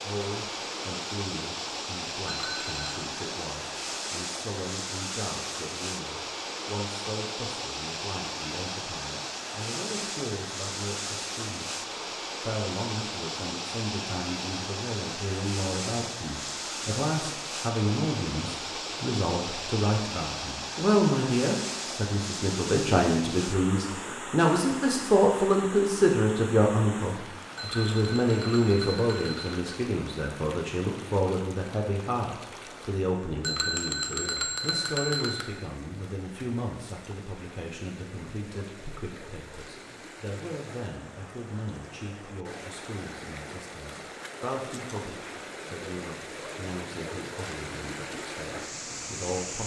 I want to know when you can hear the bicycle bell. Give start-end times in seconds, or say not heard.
2.2-2.9, 27.6-29.6, 33.4-35.5.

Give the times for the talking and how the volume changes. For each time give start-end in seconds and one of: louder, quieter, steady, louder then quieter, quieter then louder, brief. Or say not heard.
0.0-11.8 steady
12.4-49.6 louder then quieter.